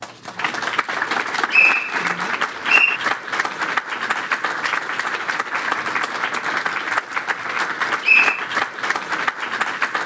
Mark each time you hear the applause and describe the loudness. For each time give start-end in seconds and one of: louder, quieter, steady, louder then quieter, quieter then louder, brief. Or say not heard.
0.0-10.0 steady.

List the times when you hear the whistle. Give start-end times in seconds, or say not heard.
1.5-3.0, 8.0-8.4.